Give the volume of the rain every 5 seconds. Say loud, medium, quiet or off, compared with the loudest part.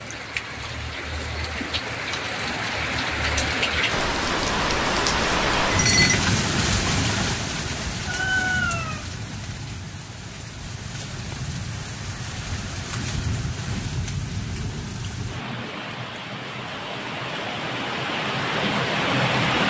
loud, loud, medium, loud.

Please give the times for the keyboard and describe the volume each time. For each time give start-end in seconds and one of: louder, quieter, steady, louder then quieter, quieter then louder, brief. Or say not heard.
not heard.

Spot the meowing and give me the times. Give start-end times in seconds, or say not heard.
8.1-9.1.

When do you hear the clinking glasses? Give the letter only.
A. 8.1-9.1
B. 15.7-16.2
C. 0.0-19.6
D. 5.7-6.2
D.